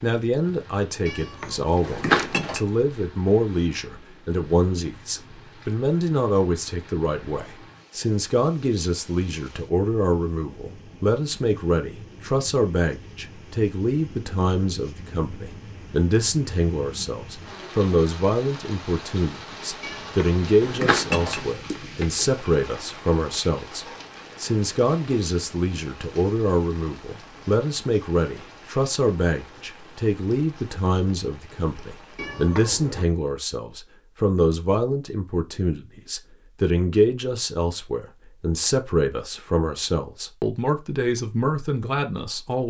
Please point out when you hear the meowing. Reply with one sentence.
You can hear the meowing from 1.1 to 2.6 s, from 19.8 to 22.4 s and from 32.1 to 33.0 s.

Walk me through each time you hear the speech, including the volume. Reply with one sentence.
You can hear the speech from 0.0 to 42.6 s, at a steady volume.